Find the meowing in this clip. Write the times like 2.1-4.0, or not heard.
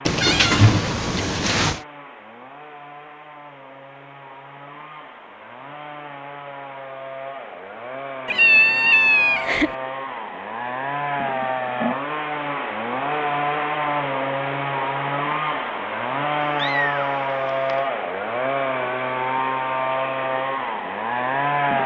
0.1-1.8, 8.2-9.8, 16.6-17.8.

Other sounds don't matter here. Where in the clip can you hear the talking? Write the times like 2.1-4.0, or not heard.
not heard.